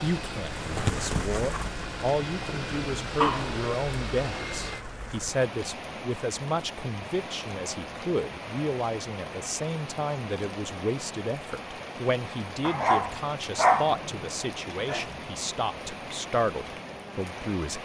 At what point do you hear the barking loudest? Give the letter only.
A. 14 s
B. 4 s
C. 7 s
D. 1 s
A.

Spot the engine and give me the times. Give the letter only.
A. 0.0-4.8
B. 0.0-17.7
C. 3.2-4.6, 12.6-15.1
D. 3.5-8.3
A.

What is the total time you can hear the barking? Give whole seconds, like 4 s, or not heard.
4 s.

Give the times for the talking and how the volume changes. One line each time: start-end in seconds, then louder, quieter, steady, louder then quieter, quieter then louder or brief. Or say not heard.
0.0-17.7 steady.